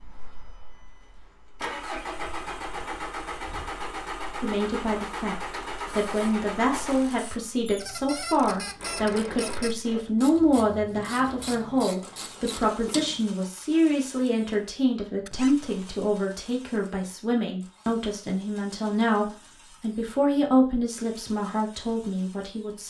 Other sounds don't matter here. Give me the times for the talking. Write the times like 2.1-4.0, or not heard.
4.4-22.8.